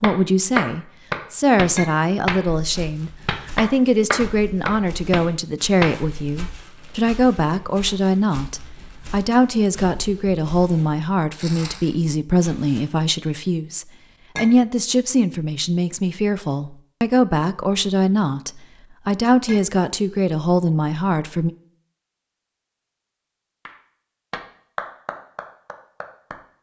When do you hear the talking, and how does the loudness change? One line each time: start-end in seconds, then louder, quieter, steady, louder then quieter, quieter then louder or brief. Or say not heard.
0.0-21.5 steady.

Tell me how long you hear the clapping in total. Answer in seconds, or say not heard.
9 s.